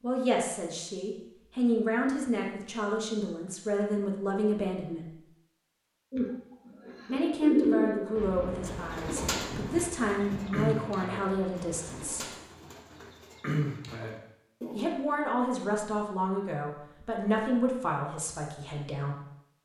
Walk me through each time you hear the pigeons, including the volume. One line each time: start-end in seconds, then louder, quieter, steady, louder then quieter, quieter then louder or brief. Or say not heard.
6.1-14.8 quieter then louder.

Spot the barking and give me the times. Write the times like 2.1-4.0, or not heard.
not heard.